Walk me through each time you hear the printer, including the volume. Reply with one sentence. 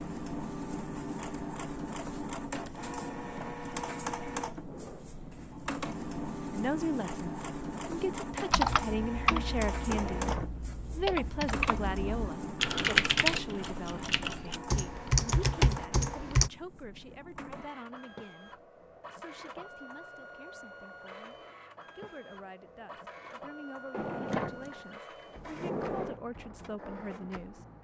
The printer can be heard from 0.0 to 27.7 s, getting quieter.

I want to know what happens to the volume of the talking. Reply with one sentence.
The loudness of the talking goes down, then up.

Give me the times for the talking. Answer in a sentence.
You can hear the talking from 6.5 to 27.6 s.